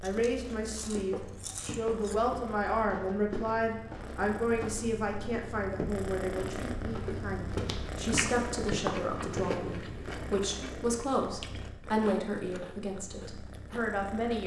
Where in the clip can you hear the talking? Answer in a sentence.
The talking can be heard from 0.0 to 14.4 s.